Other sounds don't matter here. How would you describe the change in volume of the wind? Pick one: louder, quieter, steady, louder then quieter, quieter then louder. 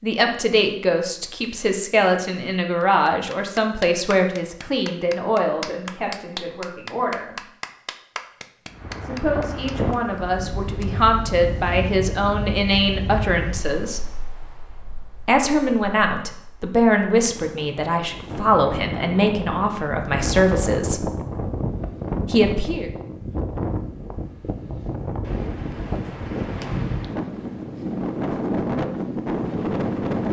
quieter then louder.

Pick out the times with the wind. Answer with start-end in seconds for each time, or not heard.
8.7-30.2.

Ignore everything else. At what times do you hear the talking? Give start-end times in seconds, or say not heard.
0.0-7.5, 9.0-14.1, 15.2-21.1, 22.2-22.9.